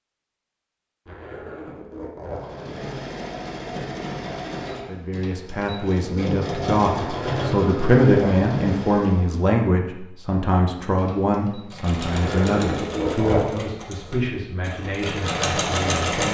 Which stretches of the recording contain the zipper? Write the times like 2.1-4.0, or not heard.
1.1-2.9, 7.0-8.5, 12.1-13.4.